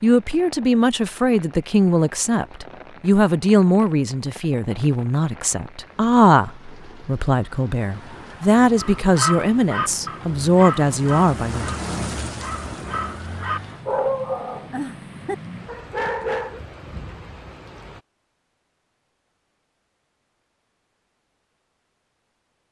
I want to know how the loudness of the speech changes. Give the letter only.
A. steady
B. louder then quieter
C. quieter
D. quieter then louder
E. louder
A.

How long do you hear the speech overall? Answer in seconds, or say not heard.
12 s.